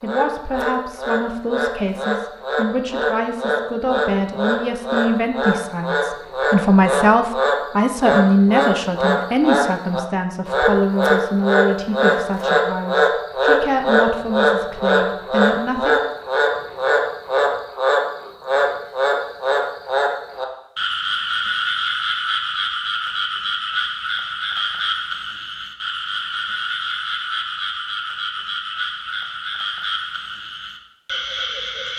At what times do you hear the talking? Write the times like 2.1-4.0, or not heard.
0.0-15.9.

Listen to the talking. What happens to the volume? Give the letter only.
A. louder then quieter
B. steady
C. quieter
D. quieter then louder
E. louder
A.